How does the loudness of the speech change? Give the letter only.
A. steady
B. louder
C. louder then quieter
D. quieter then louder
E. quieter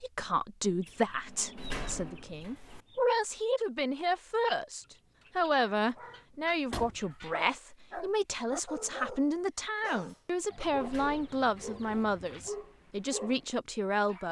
A.